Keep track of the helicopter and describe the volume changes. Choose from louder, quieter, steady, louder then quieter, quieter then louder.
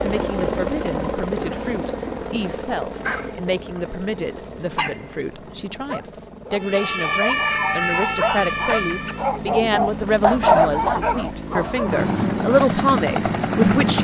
quieter then louder.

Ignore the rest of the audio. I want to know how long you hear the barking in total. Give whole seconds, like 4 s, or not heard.
9 s.